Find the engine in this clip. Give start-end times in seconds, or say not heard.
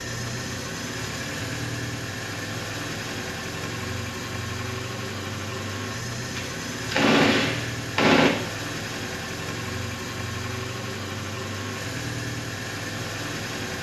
0.0-13.7.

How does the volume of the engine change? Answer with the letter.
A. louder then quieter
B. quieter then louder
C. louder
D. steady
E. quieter
D.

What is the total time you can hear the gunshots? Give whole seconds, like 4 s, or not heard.
2 s.